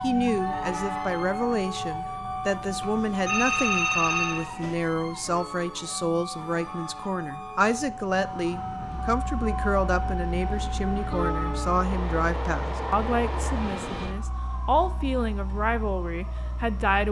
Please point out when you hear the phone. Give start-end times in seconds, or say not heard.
2.8-4.8.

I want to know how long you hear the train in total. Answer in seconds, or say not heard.
14 s.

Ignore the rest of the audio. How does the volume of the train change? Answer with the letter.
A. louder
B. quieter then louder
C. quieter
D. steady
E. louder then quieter
B.